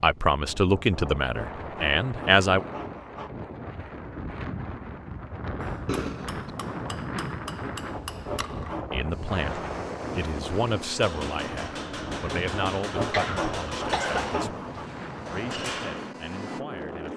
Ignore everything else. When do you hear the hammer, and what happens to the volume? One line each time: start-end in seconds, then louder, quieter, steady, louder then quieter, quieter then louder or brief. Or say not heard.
5.6-16.6 louder.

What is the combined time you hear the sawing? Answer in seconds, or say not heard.
7 s.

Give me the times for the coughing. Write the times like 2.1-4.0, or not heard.
5.8-6.5, 13.0-14.4.